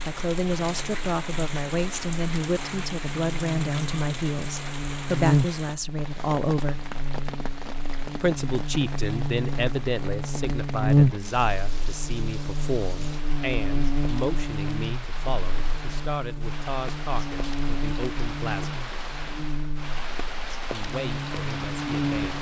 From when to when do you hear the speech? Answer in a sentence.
You can hear the speech from 0.1 to 6.8 s, from 8.2 to 18.8 s and from 20.7 to 22.3 s.